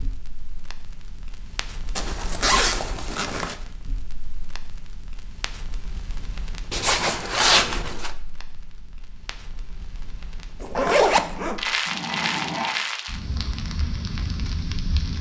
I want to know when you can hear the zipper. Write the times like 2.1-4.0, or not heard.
1.9-3.5, 6.7-8.1, 10.6-11.6.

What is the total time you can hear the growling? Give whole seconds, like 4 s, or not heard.
2 s.